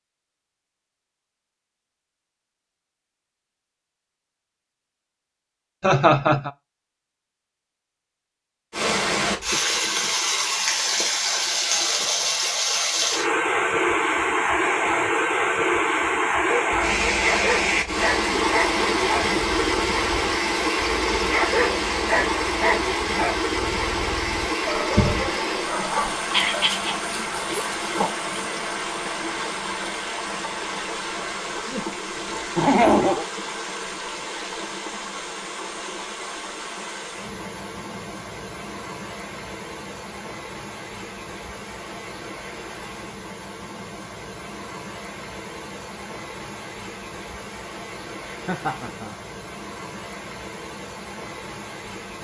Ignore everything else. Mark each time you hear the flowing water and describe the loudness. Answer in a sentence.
The flowing water can be heard from 8.7 to 52.1 s, getting quieter.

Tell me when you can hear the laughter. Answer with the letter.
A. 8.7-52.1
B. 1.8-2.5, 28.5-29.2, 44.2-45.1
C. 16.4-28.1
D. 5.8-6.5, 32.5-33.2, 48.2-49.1
D.